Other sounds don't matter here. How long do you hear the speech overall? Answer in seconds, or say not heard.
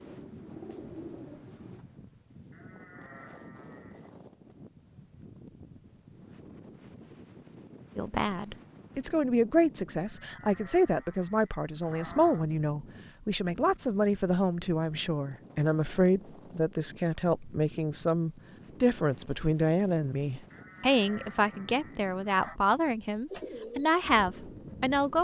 17 s.